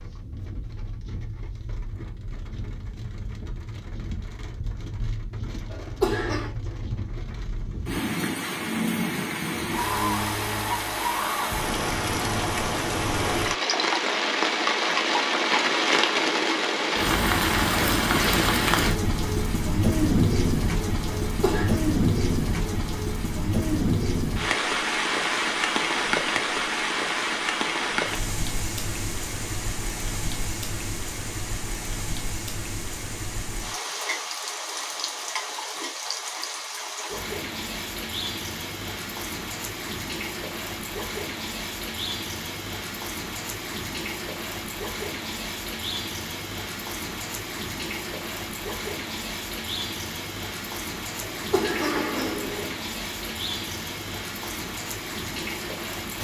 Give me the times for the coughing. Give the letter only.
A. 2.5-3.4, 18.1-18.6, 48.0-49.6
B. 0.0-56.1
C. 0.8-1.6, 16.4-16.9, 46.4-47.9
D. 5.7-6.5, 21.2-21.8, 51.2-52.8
D.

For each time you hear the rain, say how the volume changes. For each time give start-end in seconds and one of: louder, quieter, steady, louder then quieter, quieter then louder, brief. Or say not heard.
0.0-56.1 louder then quieter.